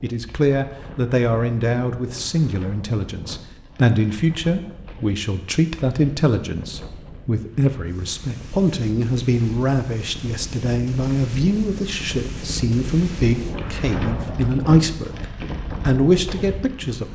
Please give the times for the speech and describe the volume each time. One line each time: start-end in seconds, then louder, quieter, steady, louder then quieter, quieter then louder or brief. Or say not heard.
0.0-15.2 steady
15.8-17.1 brief.